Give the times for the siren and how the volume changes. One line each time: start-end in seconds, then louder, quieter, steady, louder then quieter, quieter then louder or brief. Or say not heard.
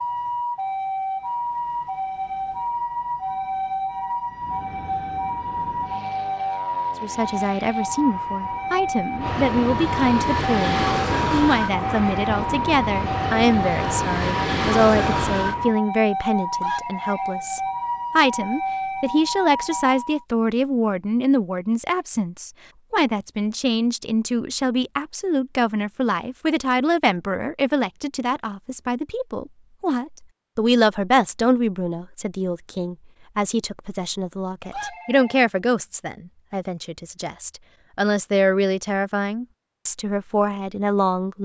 0.0-20.2 steady.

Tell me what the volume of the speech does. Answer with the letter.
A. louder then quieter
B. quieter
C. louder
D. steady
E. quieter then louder
D.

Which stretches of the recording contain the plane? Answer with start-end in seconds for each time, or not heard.
4.2-15.8.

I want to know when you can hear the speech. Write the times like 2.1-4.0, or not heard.
7.0-41.4.